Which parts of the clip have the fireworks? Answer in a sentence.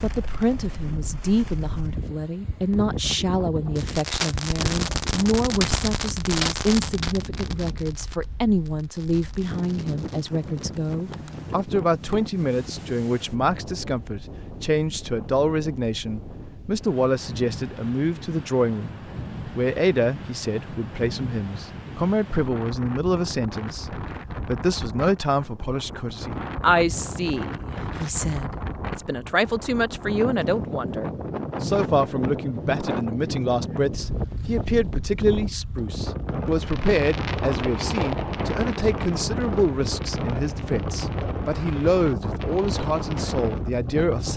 You can hear the fireworks from 3.8 to 10.8 s and from 36.4 to 43.7 s.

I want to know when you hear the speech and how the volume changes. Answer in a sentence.
You can hear the speech from 0.0 to 44.3 s, at a steady volume.